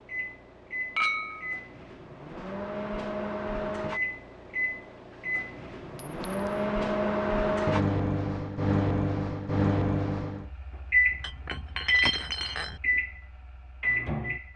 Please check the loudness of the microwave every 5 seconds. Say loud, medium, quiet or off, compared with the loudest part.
medium, loud, loud.